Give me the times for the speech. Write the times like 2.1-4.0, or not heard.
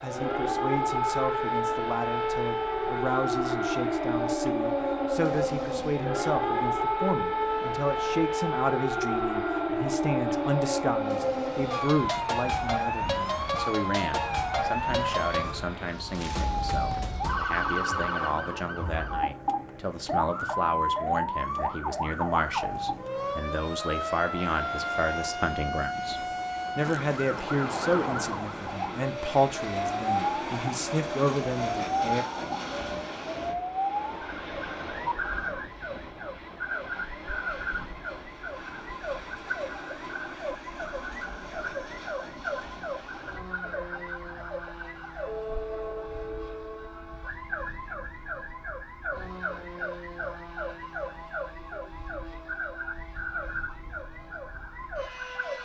0.0-32.2.